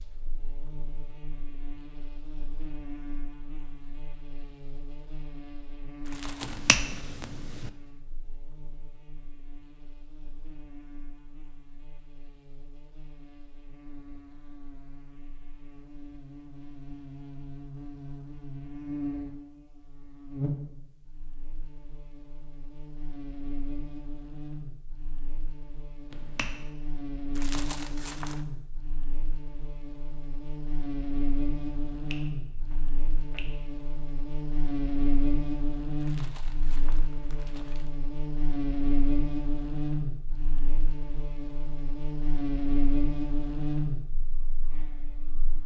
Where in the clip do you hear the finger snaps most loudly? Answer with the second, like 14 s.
7 s.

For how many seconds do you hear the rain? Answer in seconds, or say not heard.
not heard.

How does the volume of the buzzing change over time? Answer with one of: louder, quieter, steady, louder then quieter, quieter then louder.
louder.